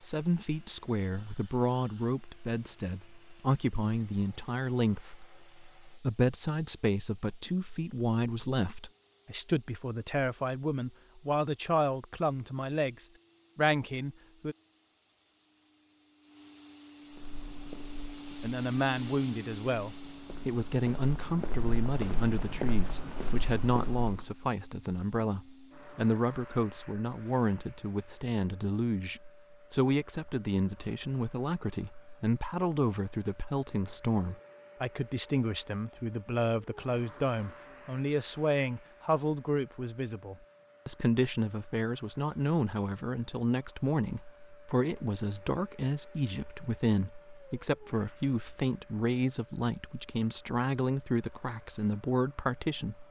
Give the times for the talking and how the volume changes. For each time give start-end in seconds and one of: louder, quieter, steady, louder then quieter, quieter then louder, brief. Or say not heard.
0.0-14.6 steady
18.4-53.0 steady.